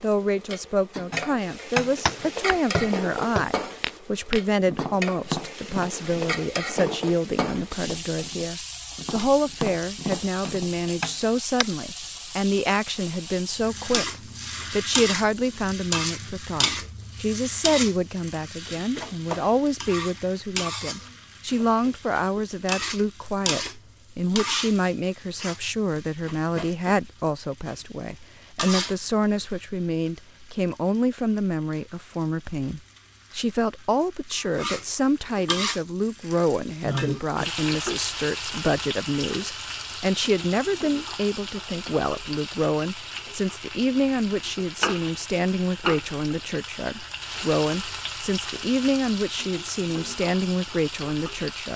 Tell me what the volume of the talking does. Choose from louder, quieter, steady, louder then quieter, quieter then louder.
steady.